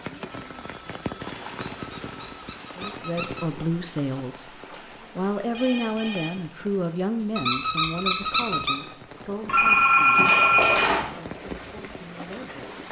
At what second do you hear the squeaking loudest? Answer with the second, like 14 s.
8 s.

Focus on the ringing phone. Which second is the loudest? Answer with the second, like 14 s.
10 s.